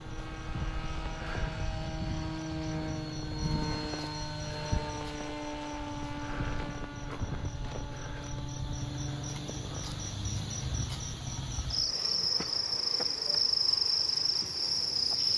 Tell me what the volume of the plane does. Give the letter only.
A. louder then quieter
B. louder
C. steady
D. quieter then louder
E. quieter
E.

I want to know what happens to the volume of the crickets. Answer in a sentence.
The loudness of the crickets goes up.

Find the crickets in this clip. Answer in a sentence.
The crickets can be heard from 0.0 to 15.3 s.